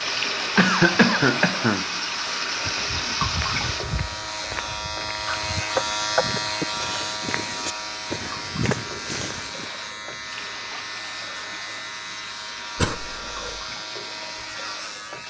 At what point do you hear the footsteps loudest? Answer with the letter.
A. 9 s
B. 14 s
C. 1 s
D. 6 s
A.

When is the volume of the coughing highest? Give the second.
1 s.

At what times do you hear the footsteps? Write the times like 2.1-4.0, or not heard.
2.6-9.7.